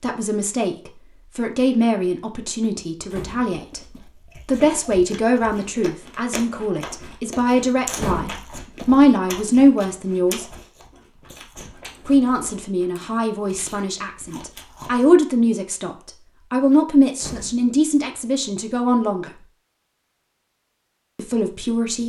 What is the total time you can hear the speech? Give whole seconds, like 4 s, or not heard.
18 s.